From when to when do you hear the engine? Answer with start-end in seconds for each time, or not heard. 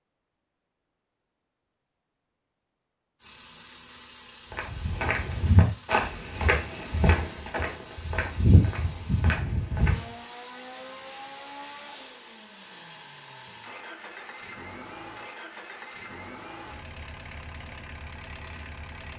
3.2-19.1.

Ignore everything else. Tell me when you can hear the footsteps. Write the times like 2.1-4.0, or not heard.
4.5-10.1.